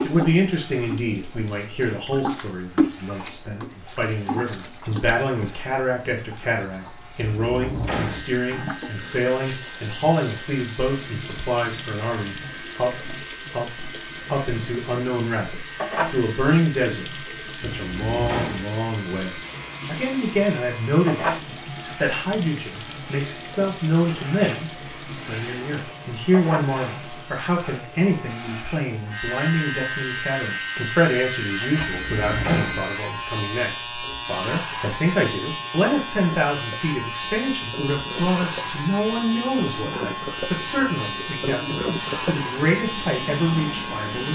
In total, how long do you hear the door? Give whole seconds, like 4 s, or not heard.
3 s.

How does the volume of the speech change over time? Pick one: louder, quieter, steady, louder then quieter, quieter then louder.
steady.